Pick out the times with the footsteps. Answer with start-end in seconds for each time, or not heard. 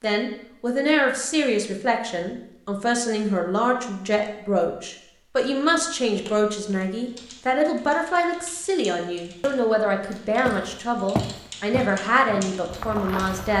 10.4-13.5.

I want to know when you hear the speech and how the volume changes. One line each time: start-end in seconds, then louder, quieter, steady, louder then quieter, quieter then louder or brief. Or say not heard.
0.0-13.5 steady.